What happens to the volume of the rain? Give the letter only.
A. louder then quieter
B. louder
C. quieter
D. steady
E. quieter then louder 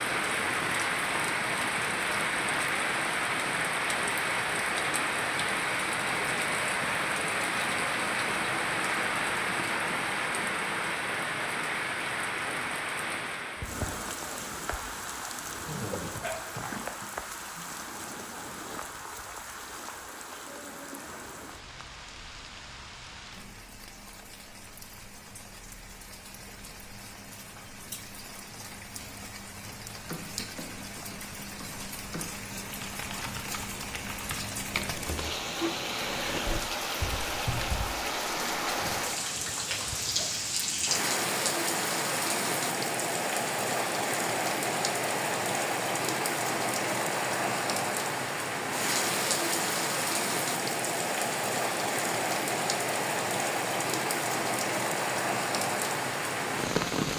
E.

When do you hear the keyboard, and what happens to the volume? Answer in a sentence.
You can hear the keyboard briefly from 15.7 to 17.4 s; and from 30.1 to 37.9 s, getting louder.